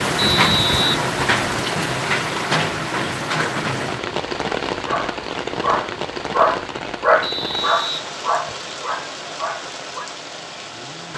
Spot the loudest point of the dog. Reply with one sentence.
The volume of the dog peaks at 7 seconds.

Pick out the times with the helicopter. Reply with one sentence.
The helicopter can't be heard in this clip.